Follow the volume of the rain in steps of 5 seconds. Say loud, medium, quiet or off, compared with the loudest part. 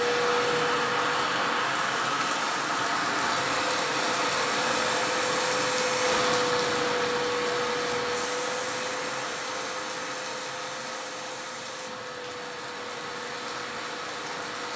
loud, loud, medium.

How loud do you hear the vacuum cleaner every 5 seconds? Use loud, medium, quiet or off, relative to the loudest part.
loud, loud, medium.